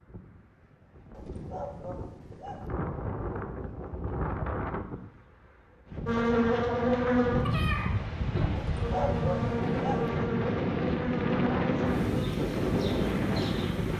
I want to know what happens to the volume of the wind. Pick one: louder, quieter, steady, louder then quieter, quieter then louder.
louder.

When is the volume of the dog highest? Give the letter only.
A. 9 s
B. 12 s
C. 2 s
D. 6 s
A.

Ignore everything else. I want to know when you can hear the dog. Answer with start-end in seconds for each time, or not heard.
1.1-2.6, 8.6-10.1.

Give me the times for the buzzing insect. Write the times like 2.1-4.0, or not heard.
6.0-13.9.